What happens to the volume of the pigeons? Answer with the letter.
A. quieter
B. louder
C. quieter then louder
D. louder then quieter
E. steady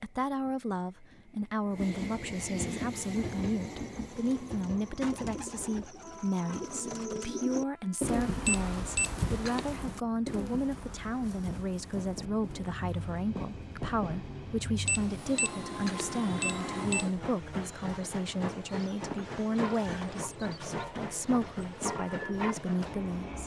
D.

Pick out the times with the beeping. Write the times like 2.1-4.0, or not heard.
8.4-9.8, 14.8-17.1.